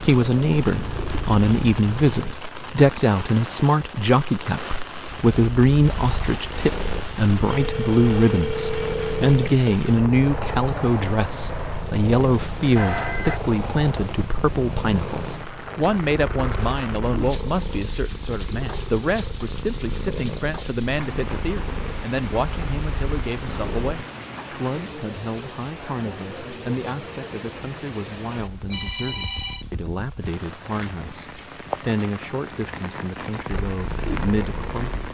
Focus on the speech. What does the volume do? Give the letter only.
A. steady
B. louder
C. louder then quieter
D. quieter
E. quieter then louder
D.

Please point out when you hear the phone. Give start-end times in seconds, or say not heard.
7.5-9.6, 12.7-13.4, 28.5-29.6.